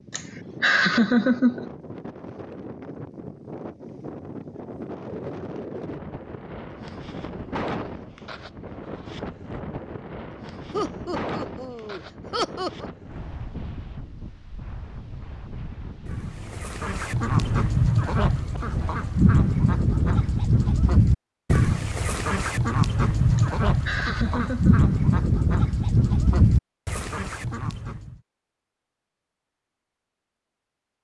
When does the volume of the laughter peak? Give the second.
1 s.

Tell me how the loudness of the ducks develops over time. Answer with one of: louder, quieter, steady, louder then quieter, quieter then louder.
steady.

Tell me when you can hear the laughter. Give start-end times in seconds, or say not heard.
0.1-1.6, 10.7-12.9, 23.4-24.9.